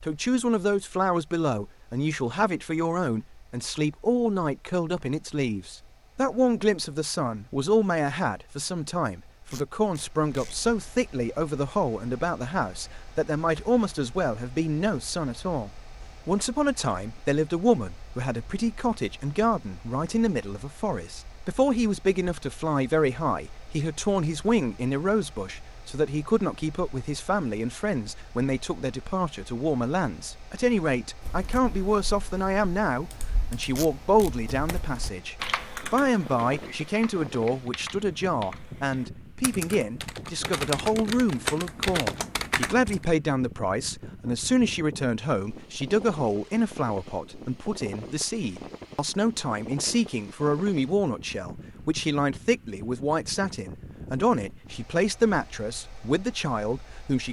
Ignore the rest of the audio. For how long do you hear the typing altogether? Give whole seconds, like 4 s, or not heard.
12 s.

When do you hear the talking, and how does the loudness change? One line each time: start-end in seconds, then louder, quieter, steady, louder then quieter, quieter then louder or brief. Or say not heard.
0.0-57.2 steady.